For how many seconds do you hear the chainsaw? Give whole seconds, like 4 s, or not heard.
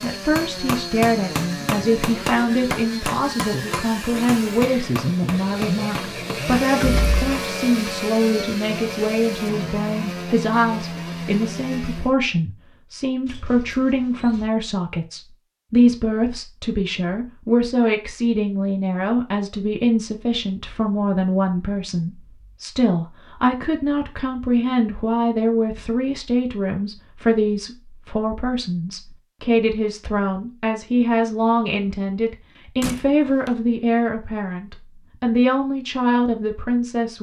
12 s.